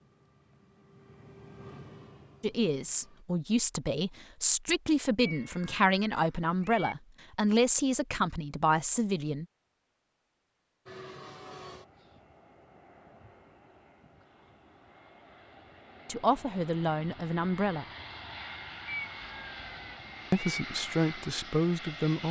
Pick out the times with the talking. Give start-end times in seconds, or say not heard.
2.4-9.4, 16.1-17.9, 20.3-22.2.